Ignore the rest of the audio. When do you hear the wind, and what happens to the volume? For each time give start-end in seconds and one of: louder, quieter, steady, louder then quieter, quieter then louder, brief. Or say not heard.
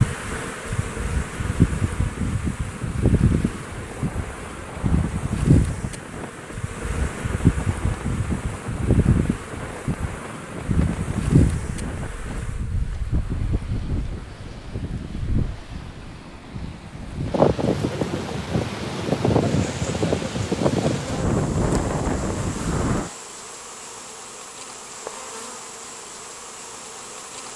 0.0-23.1 louder.